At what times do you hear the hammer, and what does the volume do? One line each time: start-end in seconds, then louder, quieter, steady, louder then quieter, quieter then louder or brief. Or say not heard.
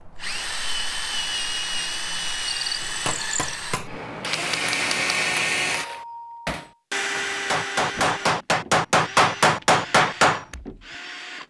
2.8-10.6 louder.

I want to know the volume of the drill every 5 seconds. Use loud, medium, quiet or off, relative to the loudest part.
loud, loud, medium.